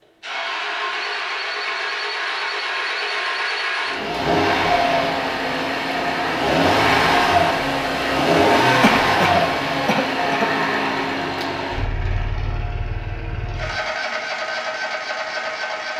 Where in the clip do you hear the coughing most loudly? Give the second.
9 s.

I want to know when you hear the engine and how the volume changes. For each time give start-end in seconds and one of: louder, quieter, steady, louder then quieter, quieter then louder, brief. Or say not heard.
0.2-15.9 louder then quieter.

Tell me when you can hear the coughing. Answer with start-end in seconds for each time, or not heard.
8.8-10.6.